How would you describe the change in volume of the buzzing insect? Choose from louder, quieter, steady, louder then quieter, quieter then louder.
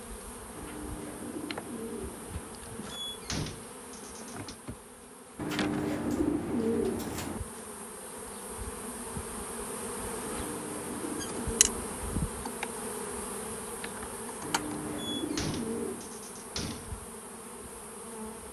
louder then quieter.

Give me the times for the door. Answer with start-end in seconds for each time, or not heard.
2.9-4.5, 14.9-16.9.